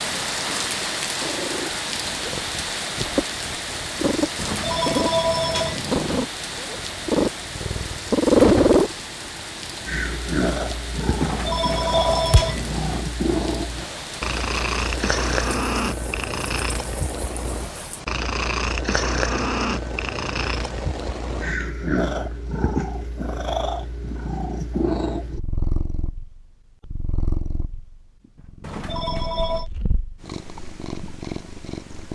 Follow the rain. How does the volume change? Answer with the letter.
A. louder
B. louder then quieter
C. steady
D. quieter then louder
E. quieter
E.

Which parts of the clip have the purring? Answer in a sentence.
The purring can be heard from 0.0 to 32.1 s.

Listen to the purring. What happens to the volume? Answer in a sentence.
The loudness of the purring goes up, then down.